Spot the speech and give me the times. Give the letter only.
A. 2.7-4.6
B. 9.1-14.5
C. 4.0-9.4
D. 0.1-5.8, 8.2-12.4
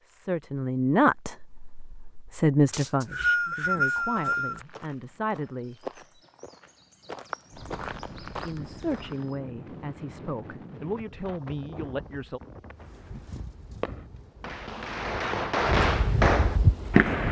D.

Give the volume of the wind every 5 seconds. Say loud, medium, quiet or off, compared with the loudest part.
off, quiet, quiet, loud.